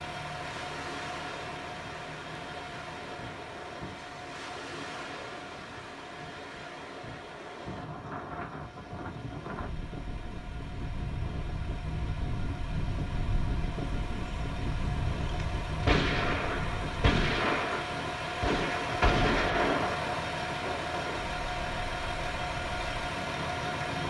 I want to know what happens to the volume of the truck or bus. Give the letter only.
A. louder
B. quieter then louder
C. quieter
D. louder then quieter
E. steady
B.